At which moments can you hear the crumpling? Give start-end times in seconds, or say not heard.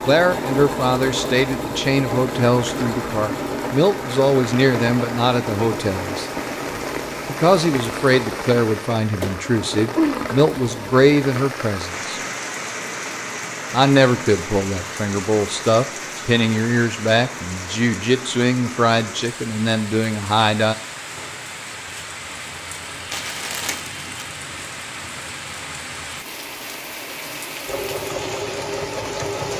23.1-24.2.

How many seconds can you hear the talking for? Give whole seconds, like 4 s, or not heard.
18 s.